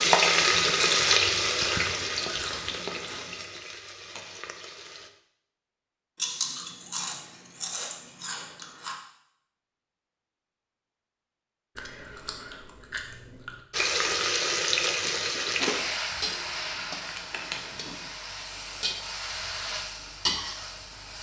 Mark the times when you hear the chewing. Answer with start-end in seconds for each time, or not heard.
0.9-3.5, 6.2-9.0, 11.8-13.6, 16.1-18.0.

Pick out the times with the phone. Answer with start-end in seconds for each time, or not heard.
not heard.